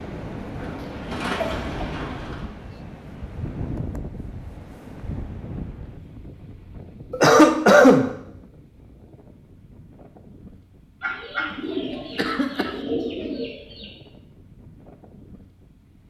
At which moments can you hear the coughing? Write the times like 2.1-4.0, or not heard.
0.8-1.9, 7.1-8.1, 11.5-12.7.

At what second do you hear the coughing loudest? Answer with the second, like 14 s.
8 s.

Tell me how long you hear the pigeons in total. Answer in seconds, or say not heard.
5 s.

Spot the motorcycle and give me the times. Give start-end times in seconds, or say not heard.
not heard.